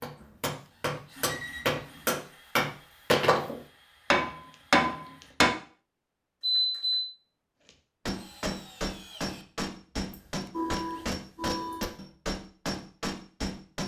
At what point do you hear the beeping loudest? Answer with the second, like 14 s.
7 s.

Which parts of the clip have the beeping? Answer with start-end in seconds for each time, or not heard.
1.1-2.0, 6.4-7.0, 10.1-11.9.